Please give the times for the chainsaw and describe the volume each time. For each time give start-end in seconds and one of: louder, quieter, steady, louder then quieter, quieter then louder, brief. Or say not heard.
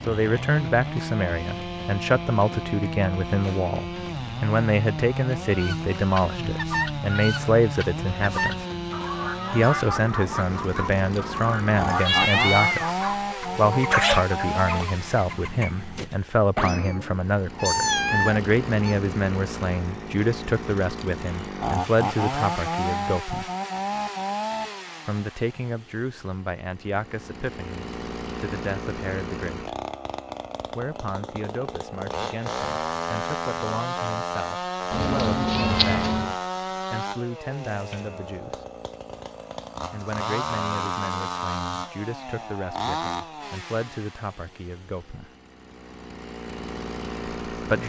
0.0-47.8 steady.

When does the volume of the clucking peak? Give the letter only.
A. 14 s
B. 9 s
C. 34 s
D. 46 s
A.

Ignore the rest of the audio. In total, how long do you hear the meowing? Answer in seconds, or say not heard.
6 s.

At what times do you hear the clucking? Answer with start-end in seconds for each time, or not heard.
5.5-16.1.